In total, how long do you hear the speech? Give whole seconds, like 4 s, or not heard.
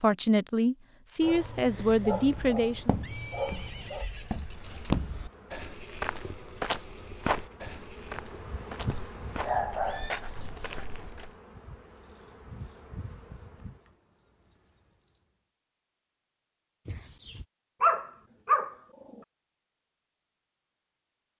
3 s.